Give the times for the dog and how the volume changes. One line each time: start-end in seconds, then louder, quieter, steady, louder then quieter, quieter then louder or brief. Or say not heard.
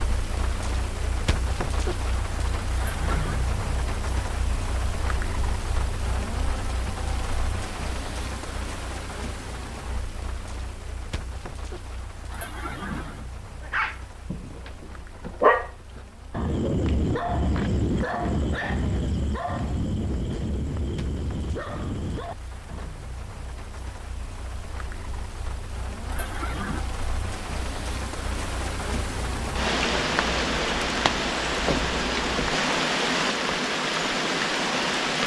13.6-22.9 quieter.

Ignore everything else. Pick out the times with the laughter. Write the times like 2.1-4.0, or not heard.
2.8-3.5, 12.3-13.2, 26.1-26.9.